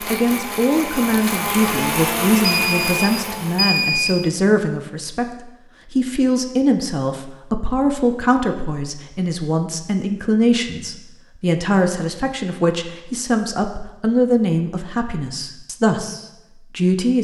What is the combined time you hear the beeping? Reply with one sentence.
The beeping can be heard for 2 seconds in total.